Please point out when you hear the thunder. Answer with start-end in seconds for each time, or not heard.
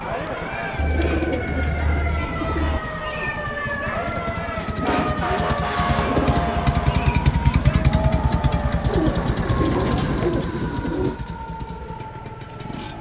9.1-11.1.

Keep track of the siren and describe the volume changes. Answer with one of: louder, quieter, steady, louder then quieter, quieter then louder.
louder then quieter.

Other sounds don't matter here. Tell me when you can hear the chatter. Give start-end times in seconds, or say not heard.
0.0-10.3.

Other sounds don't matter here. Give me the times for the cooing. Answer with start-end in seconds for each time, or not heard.
0.8-2.8, 4.5-6.6, 8.8-11.2.